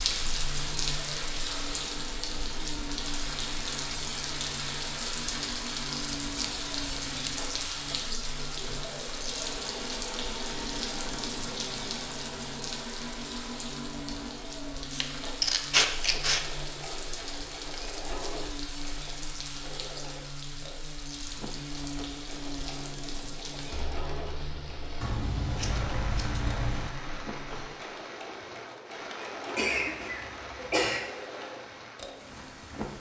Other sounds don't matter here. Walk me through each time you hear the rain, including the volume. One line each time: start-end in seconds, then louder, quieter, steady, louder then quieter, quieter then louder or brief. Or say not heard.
0.0-32.9 quieter.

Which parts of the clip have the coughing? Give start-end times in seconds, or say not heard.
29.6-31.0.